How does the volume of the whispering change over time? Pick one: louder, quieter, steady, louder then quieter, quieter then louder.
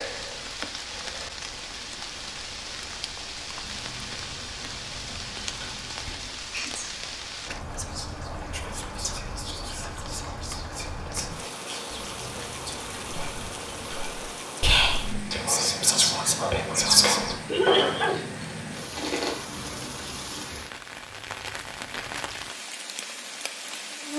louder.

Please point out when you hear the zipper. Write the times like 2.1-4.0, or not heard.
not heard.